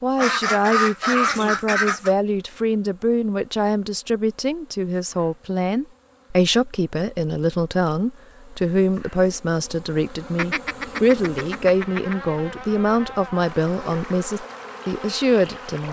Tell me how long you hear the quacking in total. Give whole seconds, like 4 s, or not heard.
4 s.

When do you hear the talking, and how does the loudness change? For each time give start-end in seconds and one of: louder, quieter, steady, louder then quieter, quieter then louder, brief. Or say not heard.
0.0-15.8 steady.